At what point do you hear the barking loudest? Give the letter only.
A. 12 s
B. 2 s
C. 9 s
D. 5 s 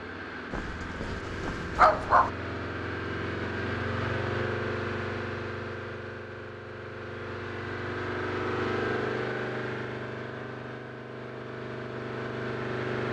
B.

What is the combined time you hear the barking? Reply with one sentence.
The barking can be heard for 2 seconds in total.